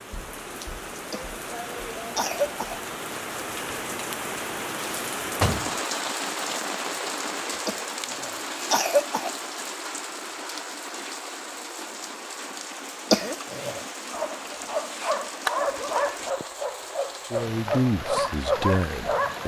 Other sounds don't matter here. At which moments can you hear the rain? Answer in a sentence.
You can hear the rain from 0.0 to 19.4 s.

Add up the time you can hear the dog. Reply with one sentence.
The dog can be heard for 5 seconds in total.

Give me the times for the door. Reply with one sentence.
You can hear the door from 4.8 to 5.8 s.